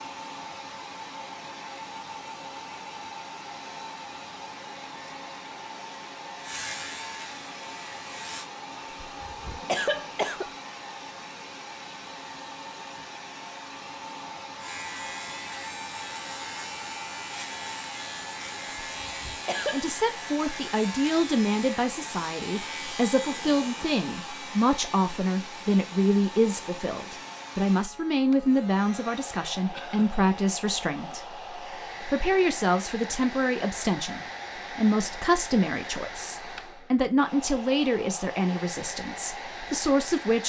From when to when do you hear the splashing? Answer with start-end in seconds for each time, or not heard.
not heard.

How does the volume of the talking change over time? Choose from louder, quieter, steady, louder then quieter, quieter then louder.
steady.